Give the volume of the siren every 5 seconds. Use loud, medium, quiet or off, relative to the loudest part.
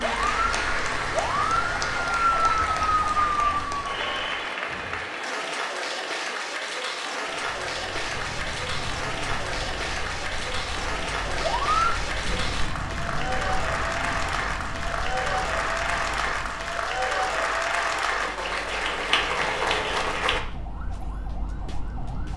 loud, quiet, medium, quiet, quiet.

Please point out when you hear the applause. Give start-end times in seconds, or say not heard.
0.0-20.4.